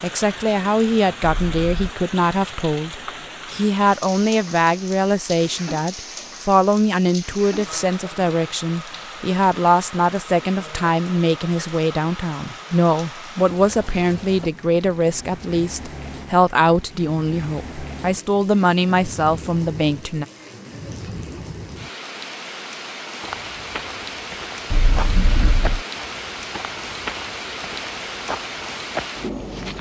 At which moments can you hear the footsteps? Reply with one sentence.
You can hear the footsteps from 23.2 to 29.7 s.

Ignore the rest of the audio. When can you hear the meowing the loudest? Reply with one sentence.
The volume of the meowing peaks at 25 seconds.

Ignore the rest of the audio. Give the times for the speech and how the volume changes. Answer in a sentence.
You can hear the speech from 0.0 to 20.2 s, at a steady volume.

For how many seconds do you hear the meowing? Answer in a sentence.
You can hear the meowing for 2 seconds altogether.